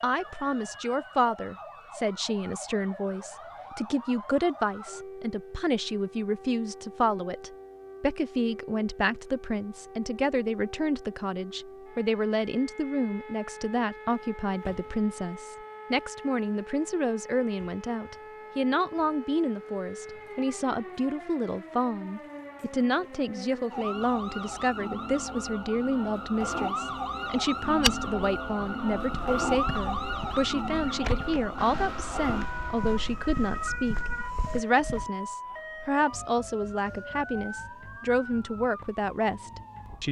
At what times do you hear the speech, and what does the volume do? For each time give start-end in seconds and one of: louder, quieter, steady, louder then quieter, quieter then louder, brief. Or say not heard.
0.0-40.0 steady.